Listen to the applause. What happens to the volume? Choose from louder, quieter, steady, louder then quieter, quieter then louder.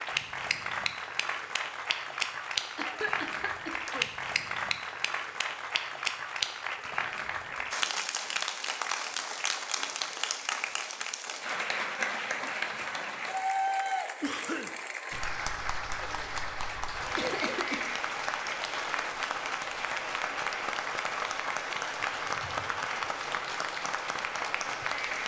steady.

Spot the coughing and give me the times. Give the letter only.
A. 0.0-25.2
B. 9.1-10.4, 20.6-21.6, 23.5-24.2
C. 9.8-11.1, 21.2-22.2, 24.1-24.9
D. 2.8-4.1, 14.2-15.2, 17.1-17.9
D.